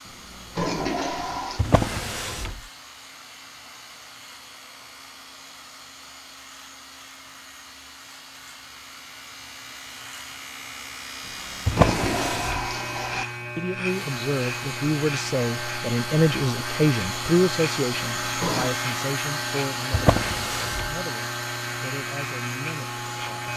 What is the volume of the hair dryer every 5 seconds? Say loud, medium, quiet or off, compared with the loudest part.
quiet, quiet, medium, loud, loud.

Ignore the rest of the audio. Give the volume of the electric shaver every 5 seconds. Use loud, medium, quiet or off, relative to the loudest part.
quiet, quiet, loud, loud, loud.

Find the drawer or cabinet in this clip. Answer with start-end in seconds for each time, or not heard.
1.6-2.6, 11.7-12.7, 19.9-20.9.